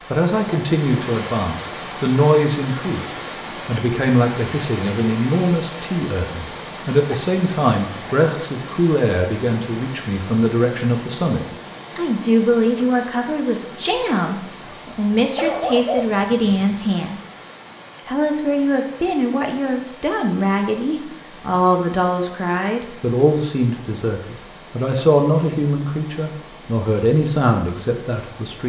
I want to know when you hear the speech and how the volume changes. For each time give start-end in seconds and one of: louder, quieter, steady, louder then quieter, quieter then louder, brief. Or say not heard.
0.1-17.2 steady
18.1-28.6 steady.